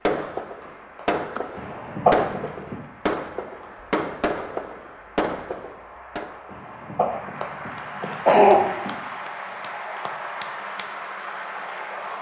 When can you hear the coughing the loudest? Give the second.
8 s.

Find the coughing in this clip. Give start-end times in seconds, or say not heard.
1.6-2.8, 6.5-8.9.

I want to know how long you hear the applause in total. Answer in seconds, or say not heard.
12 s.